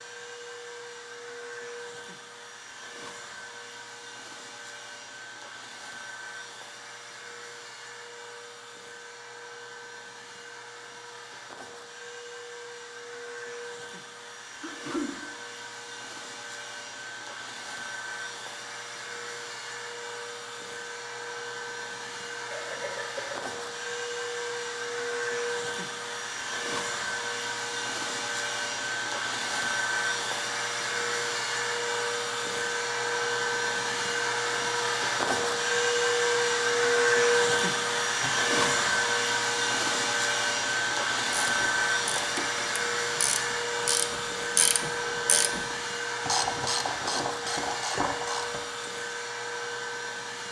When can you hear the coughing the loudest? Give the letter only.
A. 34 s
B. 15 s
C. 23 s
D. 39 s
B.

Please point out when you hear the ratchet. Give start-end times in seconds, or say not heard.
40.9-48.6.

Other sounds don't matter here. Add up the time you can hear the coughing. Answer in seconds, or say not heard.
2 s.